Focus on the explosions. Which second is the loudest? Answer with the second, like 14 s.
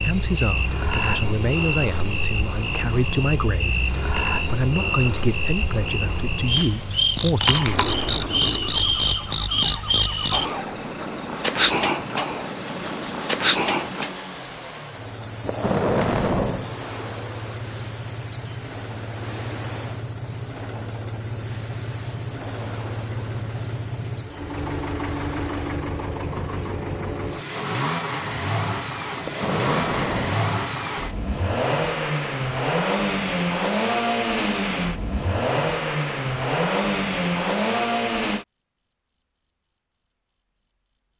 16 s.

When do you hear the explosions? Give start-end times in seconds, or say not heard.
7.7-9.1, 15.4-16.8, 29.2-30.5.